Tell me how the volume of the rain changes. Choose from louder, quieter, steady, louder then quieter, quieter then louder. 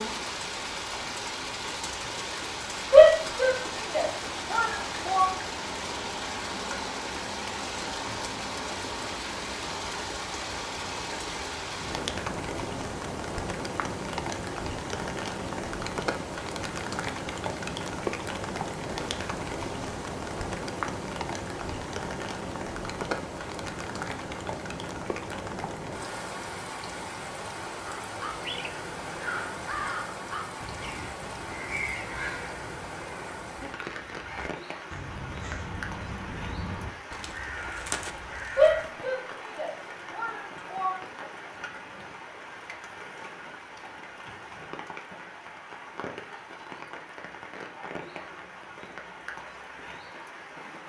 quieter.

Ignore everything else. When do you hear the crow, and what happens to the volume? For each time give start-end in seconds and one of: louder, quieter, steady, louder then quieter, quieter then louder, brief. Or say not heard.
28.0-38.9 quieter then louder.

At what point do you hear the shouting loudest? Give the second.
3 s.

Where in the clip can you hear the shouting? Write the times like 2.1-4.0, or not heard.
2.9-5.3, 38.5-41.0.